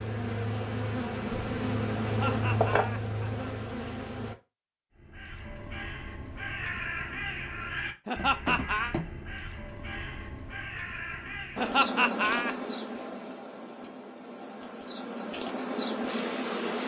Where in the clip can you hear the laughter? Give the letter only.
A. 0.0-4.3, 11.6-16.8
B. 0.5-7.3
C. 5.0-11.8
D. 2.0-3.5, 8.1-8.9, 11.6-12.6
D.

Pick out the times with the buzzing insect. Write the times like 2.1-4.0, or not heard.
0.0-4.3, 11.6-16.8.